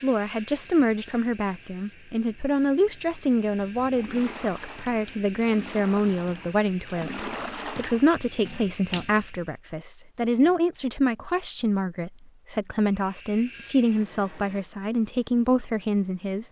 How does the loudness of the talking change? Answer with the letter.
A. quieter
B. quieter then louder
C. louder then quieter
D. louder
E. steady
E.